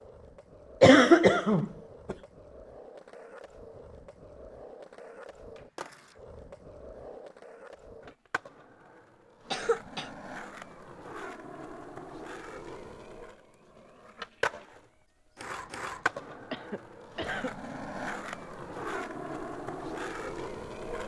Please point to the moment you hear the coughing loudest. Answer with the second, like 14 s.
1 s.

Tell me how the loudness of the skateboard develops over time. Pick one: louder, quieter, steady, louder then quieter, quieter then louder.
louder.